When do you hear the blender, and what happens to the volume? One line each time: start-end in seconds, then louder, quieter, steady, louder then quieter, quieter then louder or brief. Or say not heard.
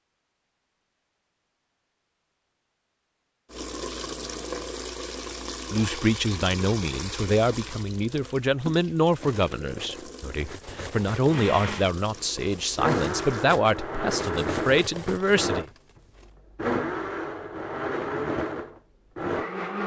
11.3-19.8 steady.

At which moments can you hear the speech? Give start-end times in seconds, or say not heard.
5.7-15.7.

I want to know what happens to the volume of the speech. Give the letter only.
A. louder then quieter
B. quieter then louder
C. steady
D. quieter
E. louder
C.